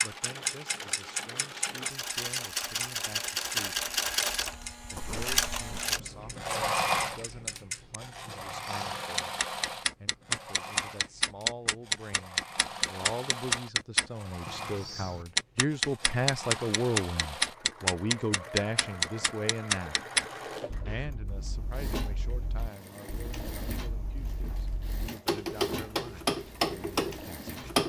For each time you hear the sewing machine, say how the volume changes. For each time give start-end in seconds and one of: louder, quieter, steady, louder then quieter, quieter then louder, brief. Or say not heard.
0.0-27.8 quieter.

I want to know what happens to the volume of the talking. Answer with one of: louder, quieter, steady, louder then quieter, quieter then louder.
louder then quieter.